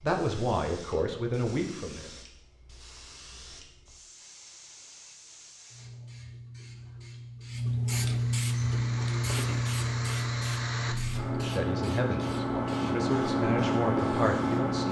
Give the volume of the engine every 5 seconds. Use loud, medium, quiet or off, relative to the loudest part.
off, medium, loud.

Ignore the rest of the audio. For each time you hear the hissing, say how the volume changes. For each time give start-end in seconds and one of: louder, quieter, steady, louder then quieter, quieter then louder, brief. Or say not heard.
0.0-14.8 louder then quieter.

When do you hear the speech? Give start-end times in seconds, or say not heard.
0.0-2.1, 11.3-14.8.